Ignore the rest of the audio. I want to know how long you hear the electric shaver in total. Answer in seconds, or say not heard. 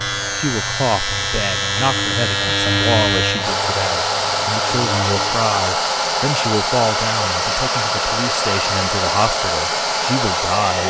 5 s.